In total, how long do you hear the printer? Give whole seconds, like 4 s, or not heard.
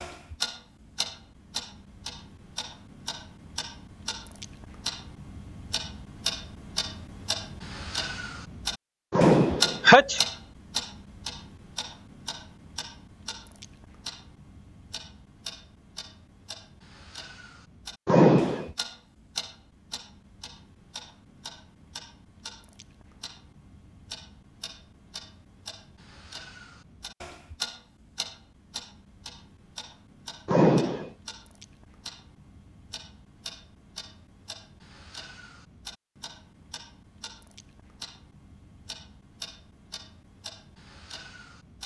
not heard.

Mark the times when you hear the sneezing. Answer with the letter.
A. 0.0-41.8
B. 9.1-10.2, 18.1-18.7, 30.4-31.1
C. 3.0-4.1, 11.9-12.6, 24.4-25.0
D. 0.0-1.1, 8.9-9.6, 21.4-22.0
B.